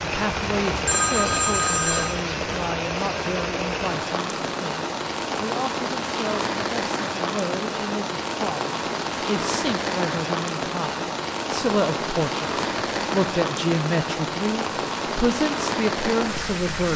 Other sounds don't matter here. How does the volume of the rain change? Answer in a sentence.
The loudness of the rain stays about the same.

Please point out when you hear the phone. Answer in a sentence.
You can hear the phone from 0.8 to 2.1 s.